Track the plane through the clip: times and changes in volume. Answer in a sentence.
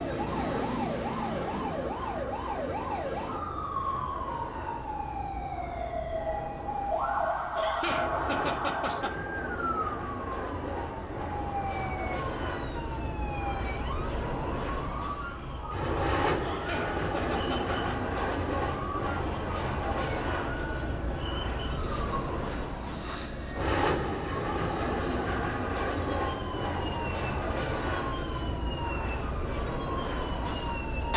The plane can be heard from 0.0 to 31.1 s, getting louder.